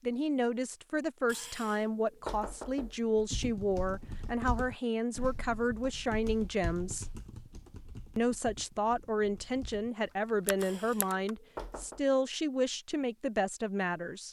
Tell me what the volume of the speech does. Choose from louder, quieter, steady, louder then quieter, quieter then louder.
steady.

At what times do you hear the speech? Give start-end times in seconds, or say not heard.
0.0-7.0, 8.2-14.2.